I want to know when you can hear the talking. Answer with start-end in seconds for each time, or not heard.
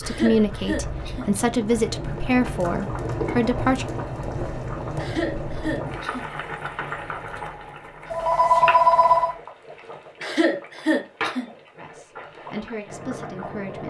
0.0-3.9, 11.8-13.8.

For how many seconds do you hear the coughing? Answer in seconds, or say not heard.
4 s.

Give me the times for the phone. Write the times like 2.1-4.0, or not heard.
8.1-9.3.